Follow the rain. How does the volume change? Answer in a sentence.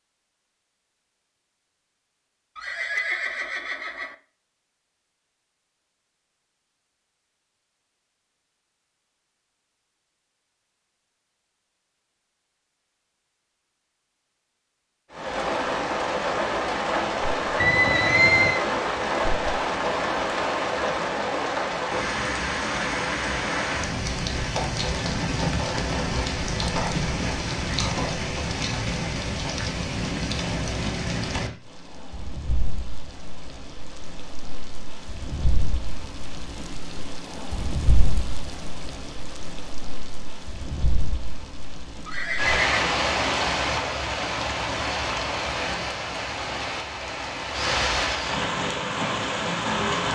The loudness of the rain goes down, then up.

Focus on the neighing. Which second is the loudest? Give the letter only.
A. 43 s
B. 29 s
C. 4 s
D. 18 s
D.